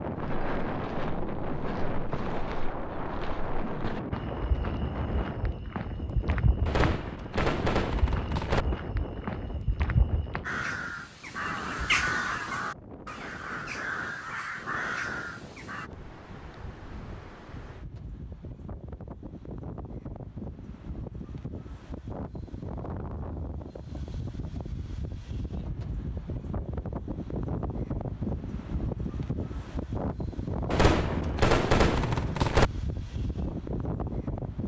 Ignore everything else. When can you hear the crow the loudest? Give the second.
12 s.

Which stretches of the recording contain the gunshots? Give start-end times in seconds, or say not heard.
6.7-8.7, 30.7-32.7.